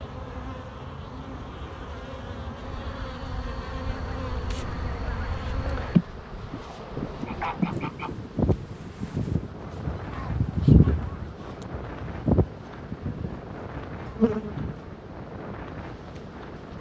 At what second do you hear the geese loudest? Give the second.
11 s.